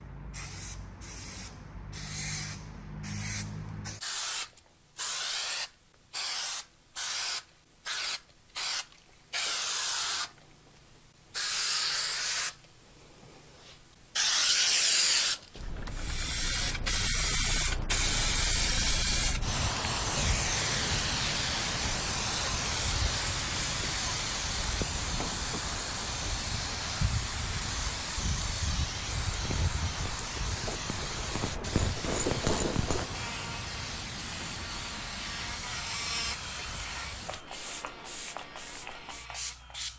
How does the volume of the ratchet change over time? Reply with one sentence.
The loudness of the ratchet goes up, then down.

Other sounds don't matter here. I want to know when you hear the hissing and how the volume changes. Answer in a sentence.
The hissing can be heard from 0.0 to 39.9 s, getting louder then quieter.